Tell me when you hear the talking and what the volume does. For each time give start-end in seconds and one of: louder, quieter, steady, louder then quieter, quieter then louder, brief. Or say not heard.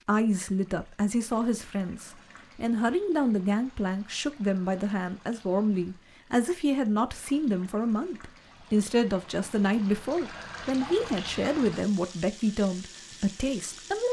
0.1-14.0 steady.